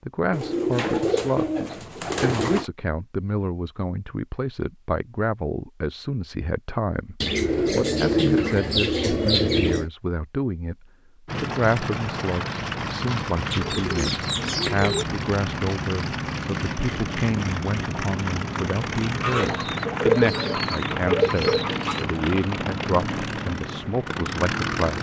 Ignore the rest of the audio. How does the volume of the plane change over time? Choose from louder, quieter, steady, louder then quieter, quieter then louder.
steady.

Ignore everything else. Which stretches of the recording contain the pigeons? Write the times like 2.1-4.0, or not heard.
0.3-2.6, 7.2-9.9, 13.5-15.1, 19.2-22.1.